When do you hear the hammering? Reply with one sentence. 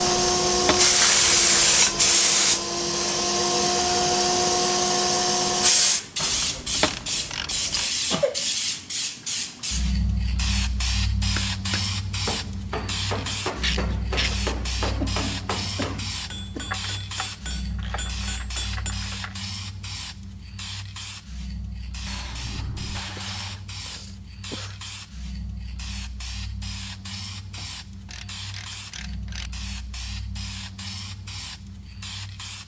The hammering can be heard from 11.3 to 18.9 s.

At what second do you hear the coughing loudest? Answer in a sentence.
The volume of the coughing peaks at 8 seconds.